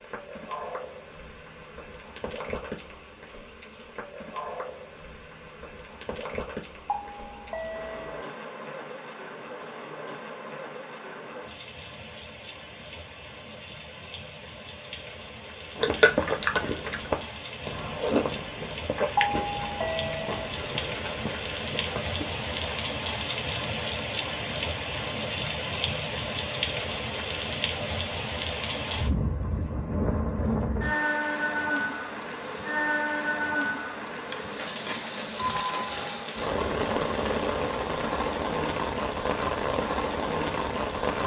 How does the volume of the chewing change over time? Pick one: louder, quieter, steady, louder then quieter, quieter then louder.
quieter.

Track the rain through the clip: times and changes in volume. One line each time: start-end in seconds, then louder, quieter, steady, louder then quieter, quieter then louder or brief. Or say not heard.
0.0-41.2 louder.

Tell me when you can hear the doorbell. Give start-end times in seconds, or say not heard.
6.8-8.2, 19.1-20.5, 34.3-36.3.